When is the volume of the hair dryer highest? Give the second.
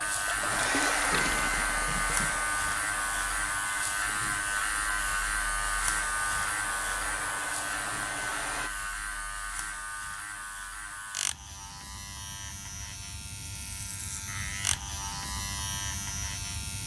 1 s.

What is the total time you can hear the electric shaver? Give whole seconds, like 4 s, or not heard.
17 s.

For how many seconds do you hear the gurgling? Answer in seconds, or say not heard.
2 s.